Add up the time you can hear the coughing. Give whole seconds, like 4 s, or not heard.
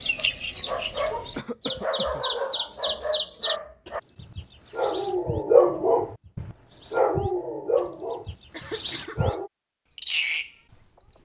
2 s.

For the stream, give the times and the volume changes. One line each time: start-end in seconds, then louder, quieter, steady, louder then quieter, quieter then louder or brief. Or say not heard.
not heard.